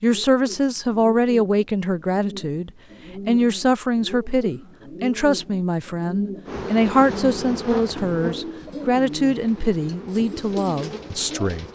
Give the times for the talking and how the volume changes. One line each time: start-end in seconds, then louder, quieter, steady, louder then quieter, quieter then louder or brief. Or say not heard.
0.0-11.6 steady.